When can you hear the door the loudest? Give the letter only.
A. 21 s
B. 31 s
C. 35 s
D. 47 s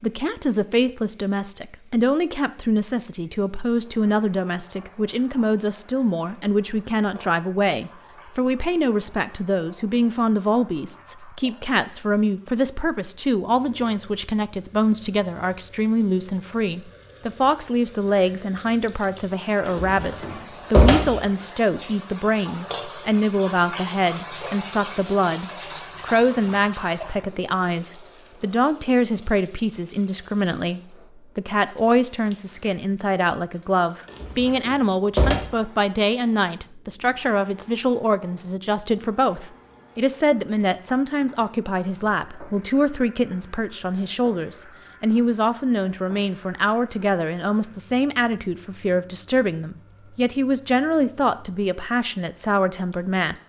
A.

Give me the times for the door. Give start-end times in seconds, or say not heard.
19.6-21.2, 34.0-35.4.